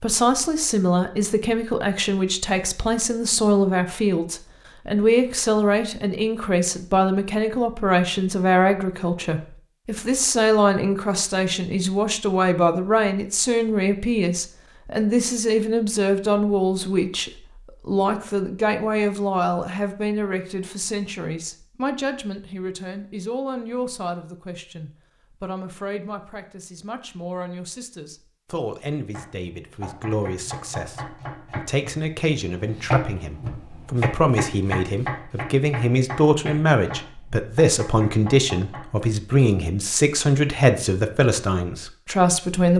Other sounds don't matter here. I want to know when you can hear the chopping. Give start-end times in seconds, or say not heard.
29.1-39.1.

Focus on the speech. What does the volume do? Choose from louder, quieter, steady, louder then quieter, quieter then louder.
quieter then louder.